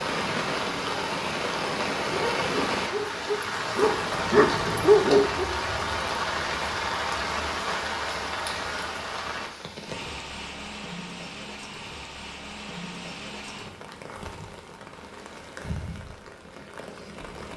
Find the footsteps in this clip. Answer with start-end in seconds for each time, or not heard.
not heard.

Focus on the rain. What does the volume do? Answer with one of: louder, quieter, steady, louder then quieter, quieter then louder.
quieter.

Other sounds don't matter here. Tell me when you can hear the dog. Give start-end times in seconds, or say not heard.
2.0-5.5.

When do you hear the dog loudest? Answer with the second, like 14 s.
5 s.